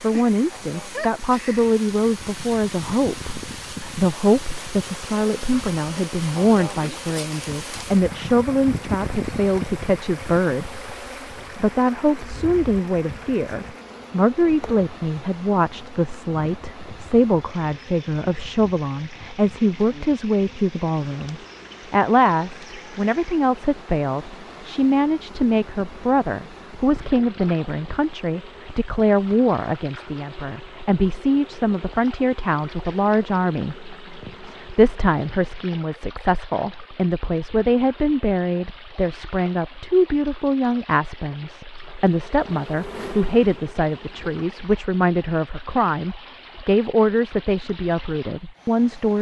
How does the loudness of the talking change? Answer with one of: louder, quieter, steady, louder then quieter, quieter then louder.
steady.